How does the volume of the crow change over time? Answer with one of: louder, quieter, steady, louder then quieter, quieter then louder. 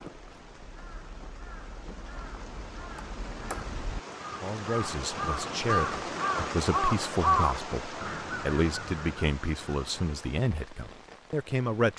louder.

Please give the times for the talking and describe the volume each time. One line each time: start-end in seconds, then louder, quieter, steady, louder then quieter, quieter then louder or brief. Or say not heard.
4.3-11.9 steady.